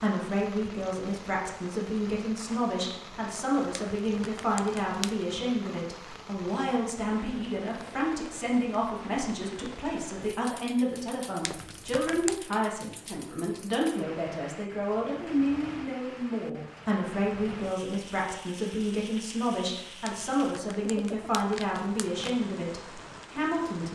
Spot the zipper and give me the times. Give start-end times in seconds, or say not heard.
not heard.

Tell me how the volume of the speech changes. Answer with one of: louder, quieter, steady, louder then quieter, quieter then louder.
steady.